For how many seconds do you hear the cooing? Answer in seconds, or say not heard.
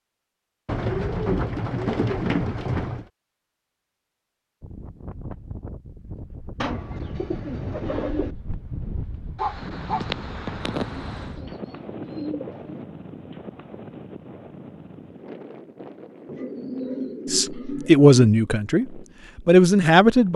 8 s.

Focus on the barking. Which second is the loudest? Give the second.
10 s.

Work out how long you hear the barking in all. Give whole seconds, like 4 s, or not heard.
2 s.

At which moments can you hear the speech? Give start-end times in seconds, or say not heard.
17.3-20.3.